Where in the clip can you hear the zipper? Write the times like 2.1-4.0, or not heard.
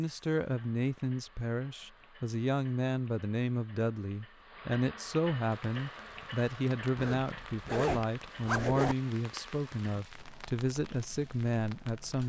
7.0-8.9.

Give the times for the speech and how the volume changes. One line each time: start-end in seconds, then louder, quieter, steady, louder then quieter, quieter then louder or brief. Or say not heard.
0.0-12.2 steady.